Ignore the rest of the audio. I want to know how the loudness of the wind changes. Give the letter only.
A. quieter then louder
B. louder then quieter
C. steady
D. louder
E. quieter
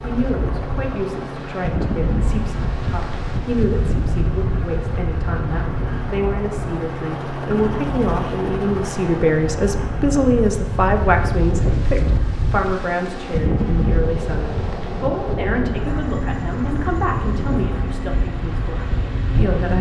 C.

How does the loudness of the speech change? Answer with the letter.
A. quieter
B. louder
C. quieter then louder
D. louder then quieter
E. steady
D.